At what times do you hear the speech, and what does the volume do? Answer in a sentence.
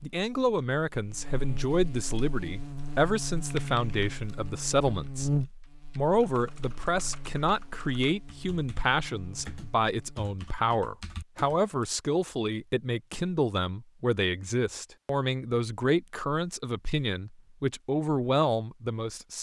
You can hear the speech from 0.0 to 5.3 s, at a steady volume; and from 6.0 to 19.3 s, at a steady volume.